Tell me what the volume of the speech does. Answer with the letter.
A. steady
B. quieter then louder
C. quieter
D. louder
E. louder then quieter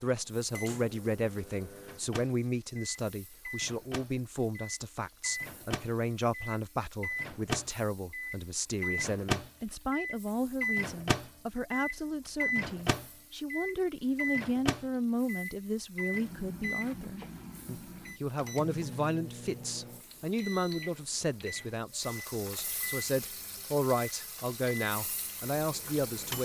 A.